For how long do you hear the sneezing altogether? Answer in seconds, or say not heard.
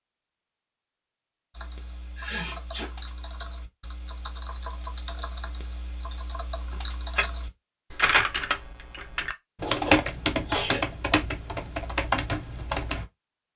3 s.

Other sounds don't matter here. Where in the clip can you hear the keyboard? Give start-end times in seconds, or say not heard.
1.5-13.1.